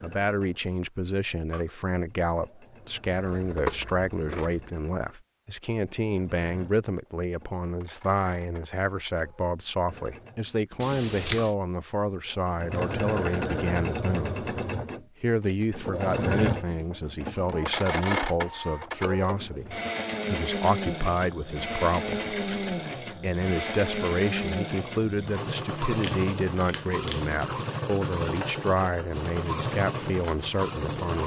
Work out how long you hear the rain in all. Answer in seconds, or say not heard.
not heard.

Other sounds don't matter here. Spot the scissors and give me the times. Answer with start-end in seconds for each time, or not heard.
3.1-4.7, 10.8-11.6, 25.9-27.4.